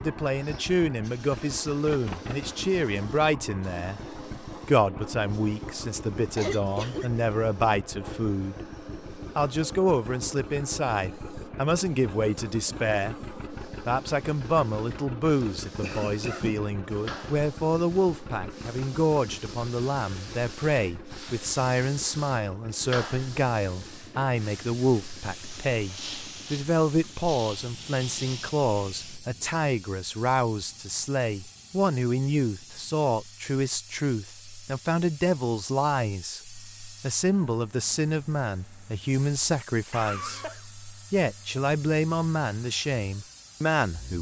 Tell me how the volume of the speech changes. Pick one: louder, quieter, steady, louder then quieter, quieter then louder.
steady.